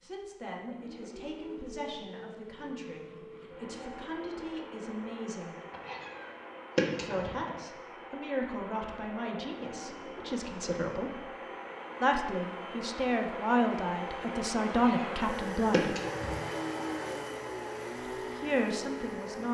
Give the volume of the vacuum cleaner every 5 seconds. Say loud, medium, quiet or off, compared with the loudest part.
medium, medium, loud, loud.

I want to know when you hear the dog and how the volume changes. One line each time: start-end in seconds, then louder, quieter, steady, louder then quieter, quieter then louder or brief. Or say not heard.
not heard.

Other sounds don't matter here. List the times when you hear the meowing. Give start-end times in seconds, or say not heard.
5.7-7.3, 14.7-16.6.